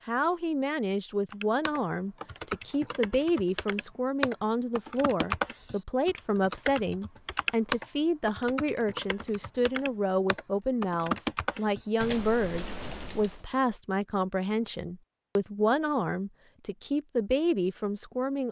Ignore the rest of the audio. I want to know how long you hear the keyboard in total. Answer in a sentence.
The keyboard can be heard for 12 seconds in total.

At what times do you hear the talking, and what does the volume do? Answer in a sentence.
You can hear the talking from 0.1 to 18.4 s, at a steady volume.